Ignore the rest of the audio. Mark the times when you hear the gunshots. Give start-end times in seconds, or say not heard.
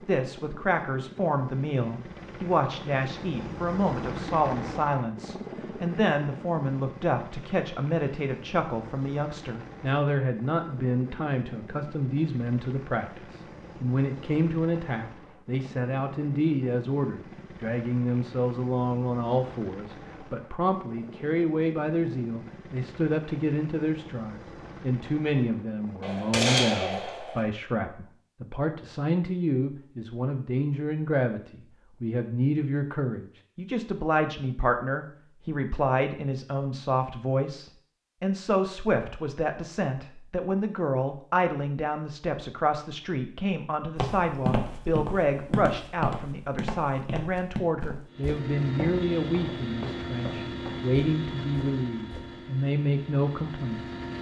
26.0-27.4.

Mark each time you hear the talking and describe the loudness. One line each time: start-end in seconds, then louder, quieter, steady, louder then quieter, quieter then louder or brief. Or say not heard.
0.1-53.9 steady.